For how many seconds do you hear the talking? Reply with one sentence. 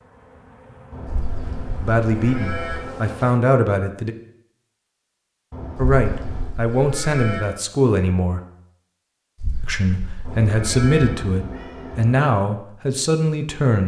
The talking can be heard for 9 seconds in total.